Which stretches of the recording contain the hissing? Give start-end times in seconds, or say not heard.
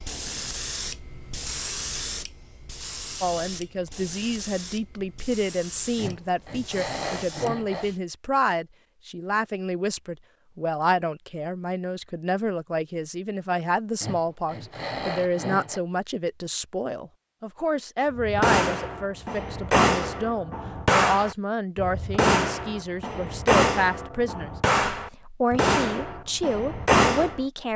0.0-8.0.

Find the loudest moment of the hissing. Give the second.
2 s.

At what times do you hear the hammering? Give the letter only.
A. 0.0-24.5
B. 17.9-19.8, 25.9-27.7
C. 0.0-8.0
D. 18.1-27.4
D.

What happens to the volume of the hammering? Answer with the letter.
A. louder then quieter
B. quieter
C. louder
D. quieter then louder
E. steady
E.